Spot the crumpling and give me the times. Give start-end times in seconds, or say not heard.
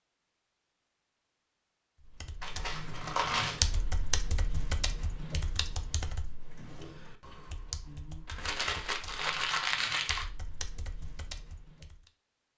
2.4-3.6, 8.2-10.2.